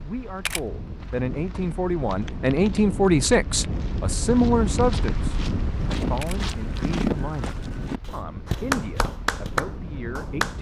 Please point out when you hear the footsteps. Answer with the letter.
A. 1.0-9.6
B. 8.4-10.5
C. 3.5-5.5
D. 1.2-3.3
A.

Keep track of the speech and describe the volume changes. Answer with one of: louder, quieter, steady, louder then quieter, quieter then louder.
louder then quieter.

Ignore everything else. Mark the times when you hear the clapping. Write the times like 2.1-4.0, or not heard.
8.4-10.5.